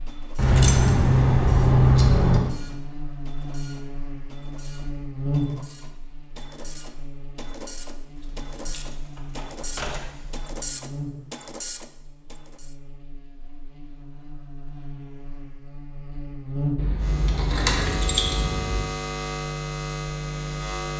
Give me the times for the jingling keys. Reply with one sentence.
The jingling keys can be heard from 0.3 to 2.4 s, from 8.2 to 10.5 s and from 16.8 to 18.8 s.